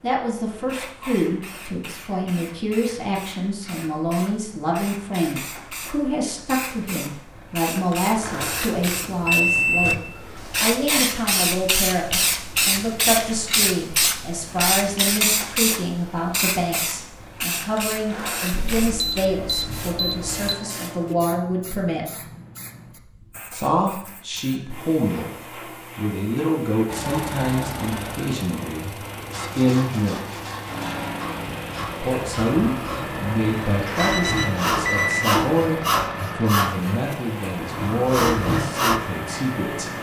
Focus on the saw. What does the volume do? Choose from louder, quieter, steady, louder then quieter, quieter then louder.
louder.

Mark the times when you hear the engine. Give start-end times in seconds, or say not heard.
26.9-39.9.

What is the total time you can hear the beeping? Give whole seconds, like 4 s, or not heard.
5 s.